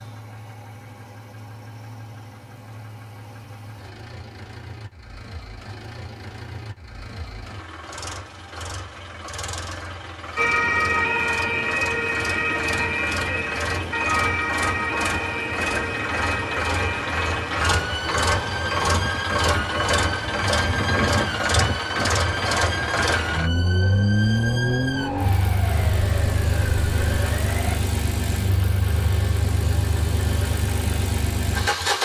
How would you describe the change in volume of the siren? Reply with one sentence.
The volume of the siren goes down.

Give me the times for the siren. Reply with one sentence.
The siren can be heard from 10.3 to 27.8 s.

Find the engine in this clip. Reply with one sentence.
The engine can be heard from 0.0 to 32.0 s.